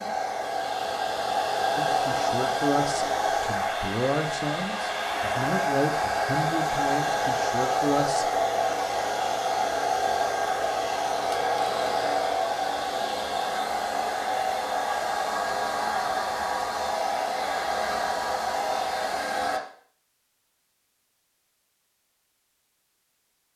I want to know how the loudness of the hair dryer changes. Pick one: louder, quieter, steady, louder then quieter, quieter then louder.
steady.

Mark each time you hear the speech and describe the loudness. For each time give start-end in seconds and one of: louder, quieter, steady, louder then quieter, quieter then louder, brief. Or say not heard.
1.8-8.3 steady.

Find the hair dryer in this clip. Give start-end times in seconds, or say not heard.
0.0-19.6.